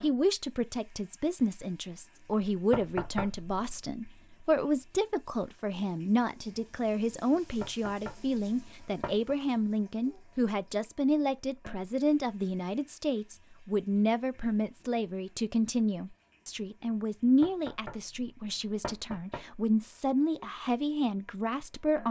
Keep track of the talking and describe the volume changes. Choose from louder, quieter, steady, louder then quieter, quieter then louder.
steady.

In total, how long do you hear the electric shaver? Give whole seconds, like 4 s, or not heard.
not heard.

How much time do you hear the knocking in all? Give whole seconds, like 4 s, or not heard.
5 s.